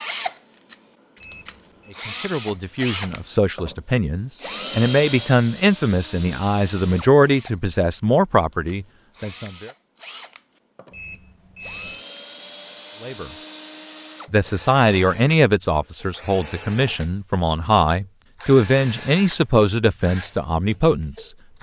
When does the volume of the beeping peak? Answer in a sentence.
The volume of the beeping peaks at 12 seconds.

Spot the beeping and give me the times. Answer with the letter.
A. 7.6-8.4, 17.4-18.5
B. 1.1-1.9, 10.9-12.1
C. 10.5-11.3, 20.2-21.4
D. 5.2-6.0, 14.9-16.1
B.